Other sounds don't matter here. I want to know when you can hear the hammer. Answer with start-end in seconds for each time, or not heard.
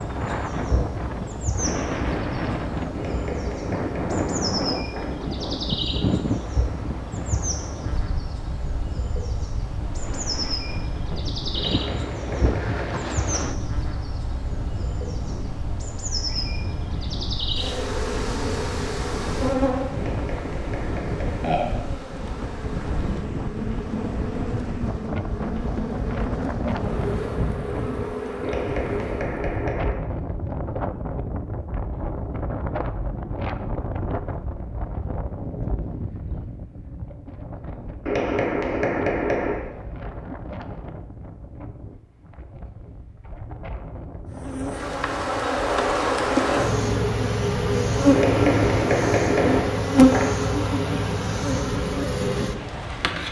2.9-5.1, 11.5-13.1, 19.9-21.6, 28.4-30.1, 38.0-40.1, 48.1-50.4.